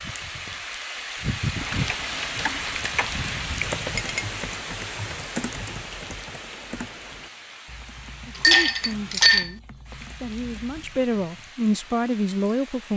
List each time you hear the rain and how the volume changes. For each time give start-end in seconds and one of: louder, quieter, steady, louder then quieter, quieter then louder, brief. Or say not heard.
0.0-12.9 quieter.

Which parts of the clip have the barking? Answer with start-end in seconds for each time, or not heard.
not heard.